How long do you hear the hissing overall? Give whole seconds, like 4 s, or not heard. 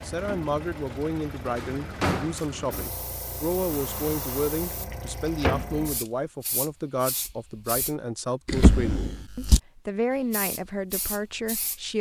7 s.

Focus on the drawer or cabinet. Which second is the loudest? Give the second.
9 s.